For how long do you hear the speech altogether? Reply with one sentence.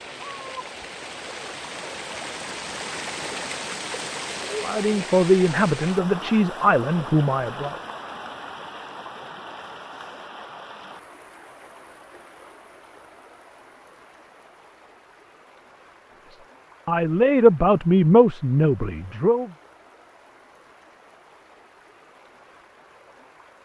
The speech can be heard for 6 seconds in total.